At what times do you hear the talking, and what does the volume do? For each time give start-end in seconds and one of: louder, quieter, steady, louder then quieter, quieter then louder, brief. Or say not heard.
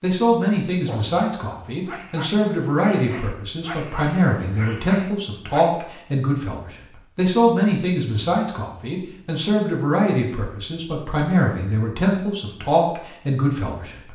0.0-14.1 steady.